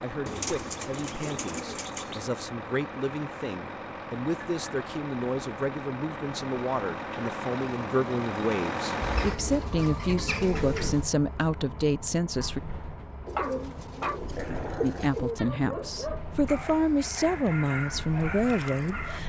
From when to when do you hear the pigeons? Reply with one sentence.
The pigeons can be heard from 0.2 to 2.2 s, from 9.0 to 11.1 s and from 13.2 to 15.4 s.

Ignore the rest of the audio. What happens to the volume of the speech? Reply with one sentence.
The volume of the speech goes up.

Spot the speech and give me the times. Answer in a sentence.
The speech can be heard from 0.0 to 12.6 s and from 14.8 to 19.2 s.